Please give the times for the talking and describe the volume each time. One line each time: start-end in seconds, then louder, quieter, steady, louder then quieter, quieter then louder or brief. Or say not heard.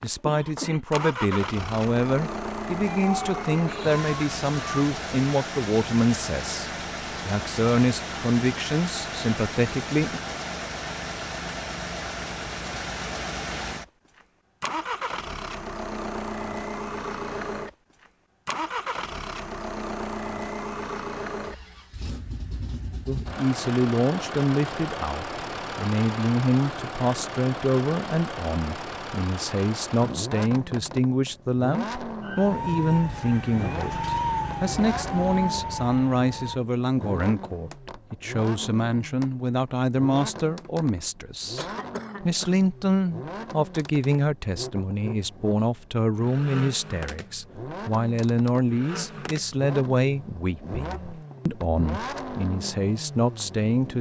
0.0-10.2 steady
23.1-53.9 steady.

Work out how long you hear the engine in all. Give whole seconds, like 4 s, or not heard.
54 s.